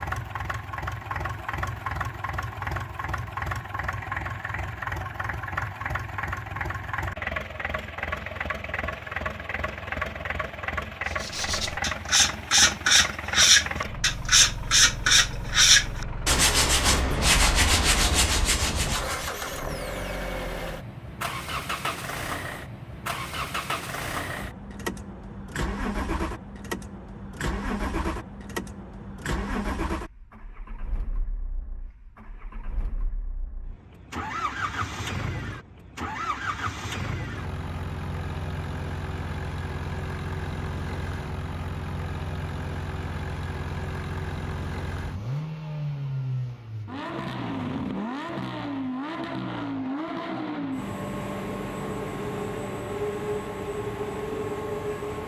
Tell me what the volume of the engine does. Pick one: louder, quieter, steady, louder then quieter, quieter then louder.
steady.